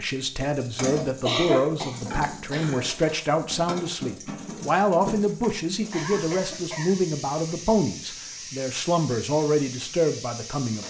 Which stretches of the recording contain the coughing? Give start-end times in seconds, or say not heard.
1.2-2.9, 5.9-6.9.